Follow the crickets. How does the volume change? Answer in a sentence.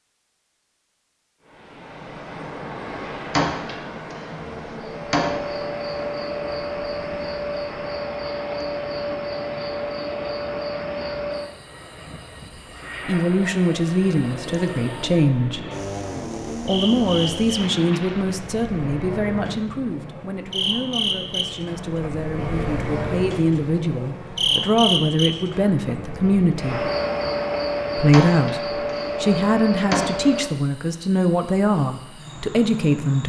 The loudness of the crickets goes down, then up.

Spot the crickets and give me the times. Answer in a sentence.
The crickets can be heard from 4.8 to 33.2 s.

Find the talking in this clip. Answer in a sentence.
You can hear the talking from 13.1 to 15.6 s, from 16.6 to 26.9 s and from 27.9 to 33.2 s.